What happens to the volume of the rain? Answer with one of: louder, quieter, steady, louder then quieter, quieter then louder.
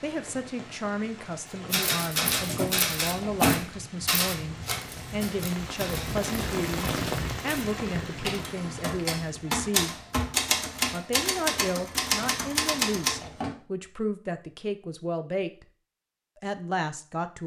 louder then quieter.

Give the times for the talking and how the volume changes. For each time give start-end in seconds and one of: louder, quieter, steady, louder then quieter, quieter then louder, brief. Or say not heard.
0.0-9.9 steady
10.9-15.7 steady
16.4-17.4 brief.